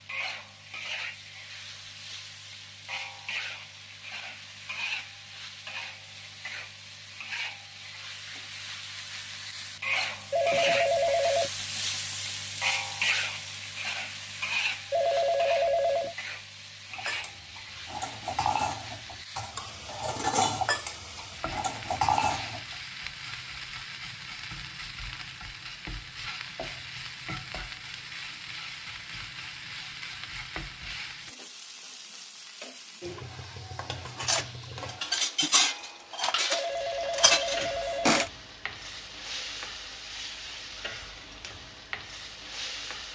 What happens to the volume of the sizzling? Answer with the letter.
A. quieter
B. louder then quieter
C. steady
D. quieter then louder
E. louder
B.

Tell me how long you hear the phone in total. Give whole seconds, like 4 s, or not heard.
4 s.